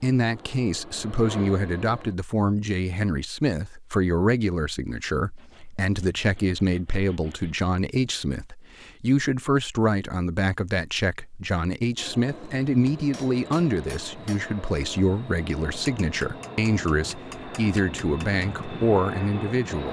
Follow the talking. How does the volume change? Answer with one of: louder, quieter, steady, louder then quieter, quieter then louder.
steady.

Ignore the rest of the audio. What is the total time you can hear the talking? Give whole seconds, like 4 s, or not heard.
20 s.